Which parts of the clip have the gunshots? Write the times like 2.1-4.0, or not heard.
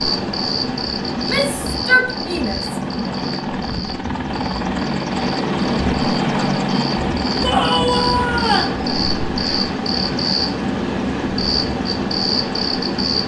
not heard.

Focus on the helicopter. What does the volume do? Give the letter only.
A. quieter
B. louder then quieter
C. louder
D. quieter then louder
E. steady
B.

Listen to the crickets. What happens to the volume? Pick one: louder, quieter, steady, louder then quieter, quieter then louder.
quieter then louder.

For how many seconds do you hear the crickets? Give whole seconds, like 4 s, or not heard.
13 s.